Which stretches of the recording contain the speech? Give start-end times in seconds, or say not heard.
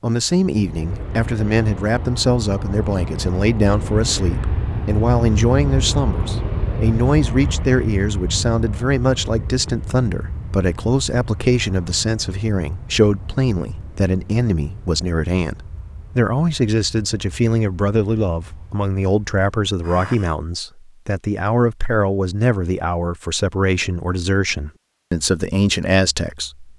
0.0-26.7.